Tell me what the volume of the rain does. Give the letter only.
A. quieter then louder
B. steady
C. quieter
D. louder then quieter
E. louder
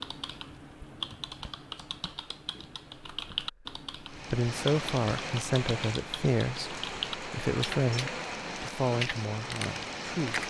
B.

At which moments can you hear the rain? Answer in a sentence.
The rain can be heard from 4.0 to 10.4 s.